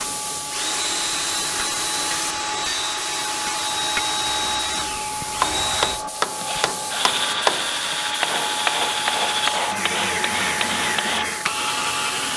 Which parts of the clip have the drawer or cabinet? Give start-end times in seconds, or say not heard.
not heard.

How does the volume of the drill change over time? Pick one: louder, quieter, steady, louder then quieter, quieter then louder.
steady.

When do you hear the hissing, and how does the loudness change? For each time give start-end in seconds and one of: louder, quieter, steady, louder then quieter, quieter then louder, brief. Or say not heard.
0.0-12.3 steady.